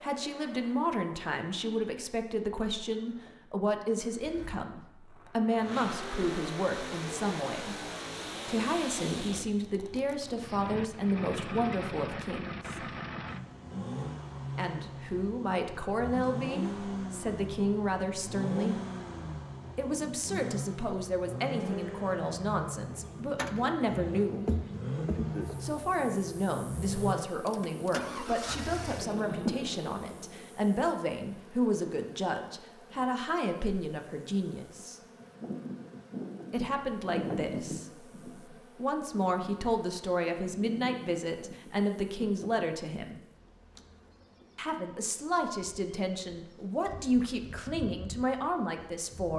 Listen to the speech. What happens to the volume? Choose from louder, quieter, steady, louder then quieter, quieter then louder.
steady.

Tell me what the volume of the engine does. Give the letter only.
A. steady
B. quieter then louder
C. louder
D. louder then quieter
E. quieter
C.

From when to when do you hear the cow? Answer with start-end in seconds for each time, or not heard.
not heard.